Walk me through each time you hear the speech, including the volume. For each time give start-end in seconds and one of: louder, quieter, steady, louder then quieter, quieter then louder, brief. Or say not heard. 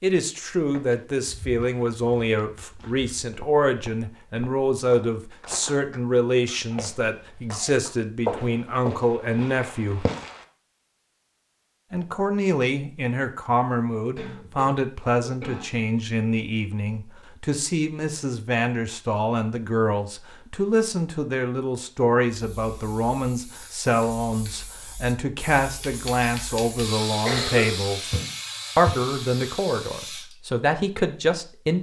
0.0-10.1 steady
11.9-28.1 steady
28.8-31.7 brief.